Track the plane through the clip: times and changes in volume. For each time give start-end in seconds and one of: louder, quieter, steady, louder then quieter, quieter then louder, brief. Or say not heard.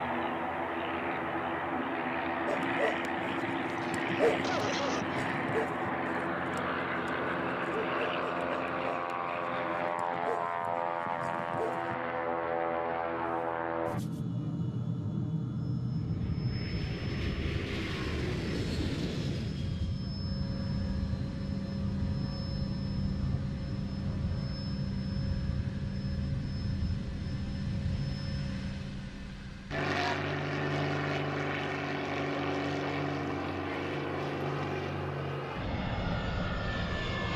0.0-37.3 steady.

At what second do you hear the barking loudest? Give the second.
4 s.